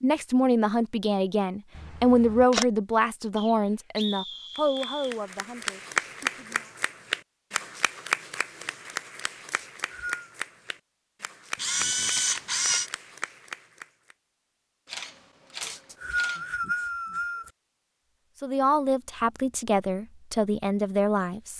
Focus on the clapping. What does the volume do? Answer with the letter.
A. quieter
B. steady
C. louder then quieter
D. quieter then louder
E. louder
A.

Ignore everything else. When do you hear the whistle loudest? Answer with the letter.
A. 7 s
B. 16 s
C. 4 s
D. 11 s
B.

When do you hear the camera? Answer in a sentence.
You can hear the camera from 1.8 to 2.6 s, from 11.6 to 12.9 s and from 14.8 to 16.5 s.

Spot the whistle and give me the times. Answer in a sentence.
You can hear the whistle from 3.4 to 5.2 s, from 9.5 to 10.3 s and from 15.6 to 17.5 s.